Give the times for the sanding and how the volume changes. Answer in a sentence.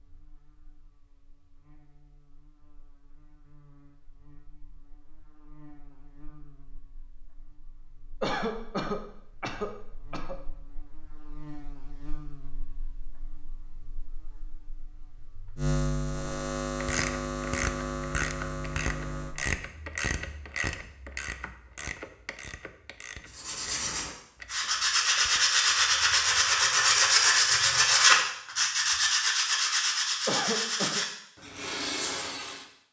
You can hear the sanding from 23.2 to 32.6 s, getting louder then quieter.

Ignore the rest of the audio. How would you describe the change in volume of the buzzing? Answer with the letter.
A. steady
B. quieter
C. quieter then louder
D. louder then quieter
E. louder
E.